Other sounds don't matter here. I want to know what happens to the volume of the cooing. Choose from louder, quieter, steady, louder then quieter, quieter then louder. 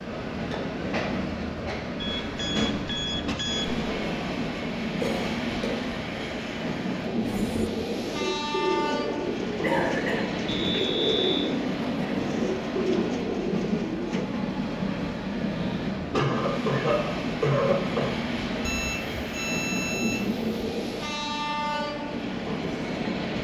steady.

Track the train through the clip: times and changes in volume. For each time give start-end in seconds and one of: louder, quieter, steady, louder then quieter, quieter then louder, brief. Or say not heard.
0.0-23.4 steady.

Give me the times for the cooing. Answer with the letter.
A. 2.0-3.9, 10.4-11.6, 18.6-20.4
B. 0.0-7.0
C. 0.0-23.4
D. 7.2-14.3
D.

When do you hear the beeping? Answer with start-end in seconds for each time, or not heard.
2.0-3.9, 10.4-11.6, 18.6-20.4.